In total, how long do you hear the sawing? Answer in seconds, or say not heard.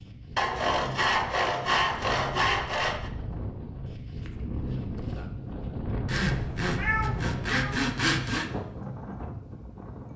5 s.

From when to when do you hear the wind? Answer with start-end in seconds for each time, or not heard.
0.0-10.1.